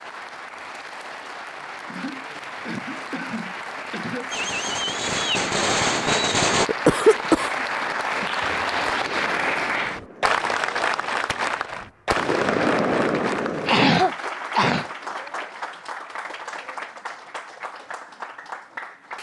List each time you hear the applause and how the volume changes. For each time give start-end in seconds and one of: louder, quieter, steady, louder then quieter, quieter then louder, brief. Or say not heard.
0.0-19.1 louder then quieter.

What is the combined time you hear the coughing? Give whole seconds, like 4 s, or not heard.
5 s.